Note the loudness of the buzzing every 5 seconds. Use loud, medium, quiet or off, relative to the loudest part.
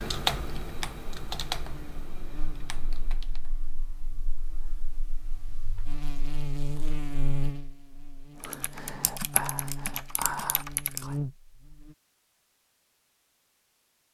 quiet, loud, loud.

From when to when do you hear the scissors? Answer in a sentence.
The scissors can't be heard in this clip.